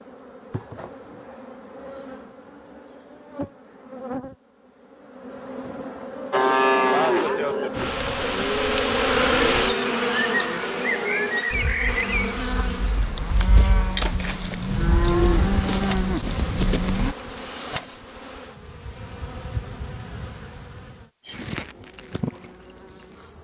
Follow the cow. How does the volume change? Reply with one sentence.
The volume of the cow goes down, then up.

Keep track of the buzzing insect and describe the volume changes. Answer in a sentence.
The loudness of the buzzing insect goes up, then down.